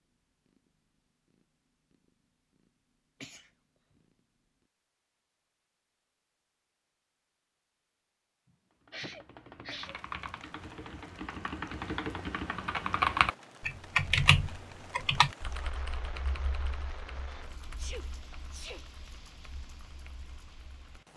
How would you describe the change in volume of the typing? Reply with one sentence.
The loudness of the typing goes up, then down.